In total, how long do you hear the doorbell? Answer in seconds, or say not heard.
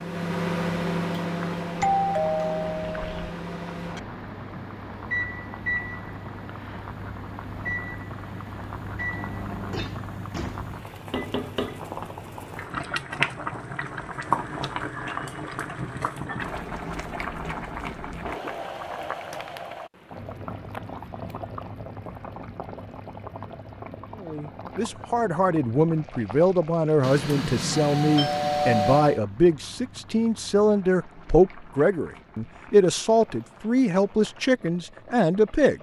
4 s.